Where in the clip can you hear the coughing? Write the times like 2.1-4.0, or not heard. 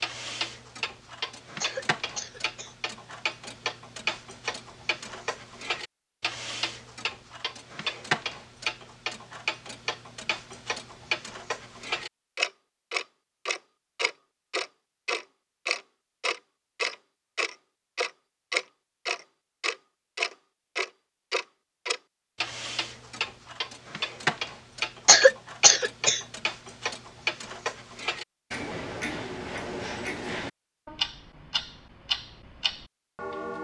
1.6-2.8, 25.1-26.2.